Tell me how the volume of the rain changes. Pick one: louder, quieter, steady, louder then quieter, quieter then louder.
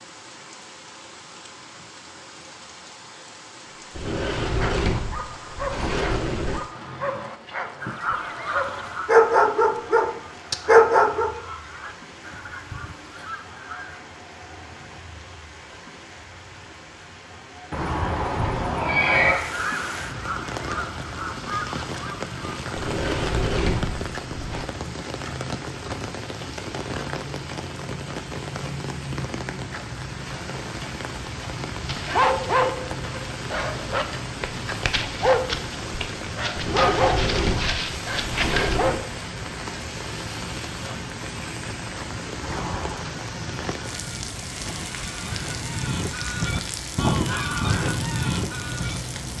louder.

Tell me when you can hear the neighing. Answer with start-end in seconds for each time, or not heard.
17.7-19.4, 42.4-43.0.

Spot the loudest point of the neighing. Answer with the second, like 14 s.
19 s.